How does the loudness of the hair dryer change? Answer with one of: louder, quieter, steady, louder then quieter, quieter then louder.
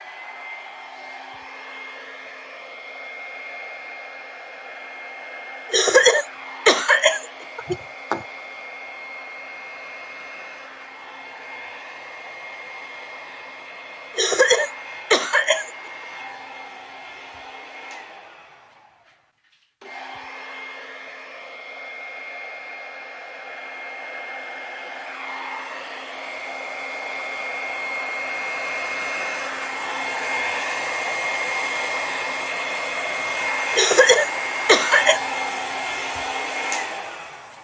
louder.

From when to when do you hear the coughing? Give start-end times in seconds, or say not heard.
5.7-8.2, 14.2-15.7, 33.8-35.2.